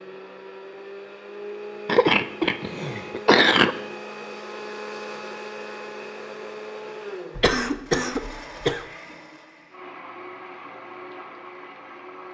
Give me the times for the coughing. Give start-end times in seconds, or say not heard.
1.9-3.8, 7.3-8.8.